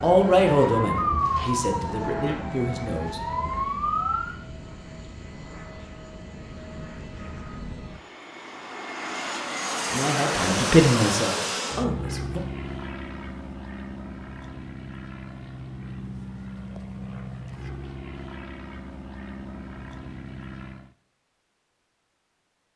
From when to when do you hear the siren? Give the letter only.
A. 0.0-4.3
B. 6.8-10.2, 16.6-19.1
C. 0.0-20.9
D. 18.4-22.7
A.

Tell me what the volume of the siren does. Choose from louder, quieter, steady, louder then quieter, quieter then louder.
quieter then louder.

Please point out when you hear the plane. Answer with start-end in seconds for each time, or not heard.
0.0-20.9.